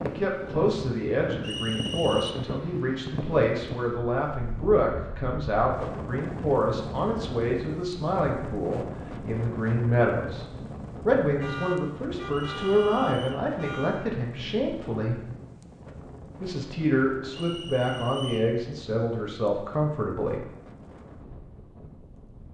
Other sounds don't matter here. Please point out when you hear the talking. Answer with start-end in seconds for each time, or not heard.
0.0-10.4, 11.1-15.2, 16.4-20.4.